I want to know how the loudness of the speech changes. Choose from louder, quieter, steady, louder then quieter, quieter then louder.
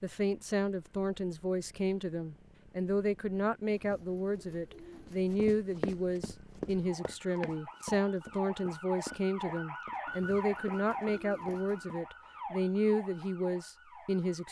steady.